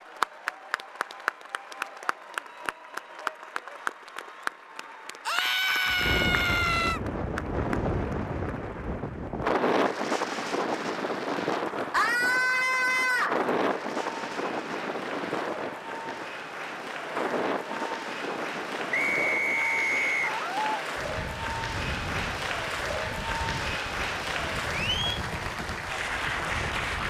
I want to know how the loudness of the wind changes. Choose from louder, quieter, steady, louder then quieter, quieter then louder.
quieter.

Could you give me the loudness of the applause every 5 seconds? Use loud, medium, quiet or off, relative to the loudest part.
loud, medium, medium, medium, loud, loud.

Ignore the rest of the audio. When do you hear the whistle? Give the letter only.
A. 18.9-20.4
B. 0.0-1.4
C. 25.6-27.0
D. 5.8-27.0
A.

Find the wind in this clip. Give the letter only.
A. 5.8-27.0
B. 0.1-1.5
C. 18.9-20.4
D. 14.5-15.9
A.